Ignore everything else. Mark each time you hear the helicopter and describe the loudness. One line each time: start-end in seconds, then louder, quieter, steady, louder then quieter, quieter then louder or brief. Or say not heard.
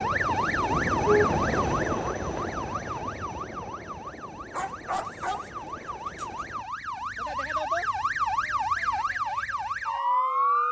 0.0-6.7 quieter.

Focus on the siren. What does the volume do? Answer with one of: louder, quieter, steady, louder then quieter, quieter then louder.
quieter then louder.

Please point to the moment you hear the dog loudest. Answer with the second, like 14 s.
5 s.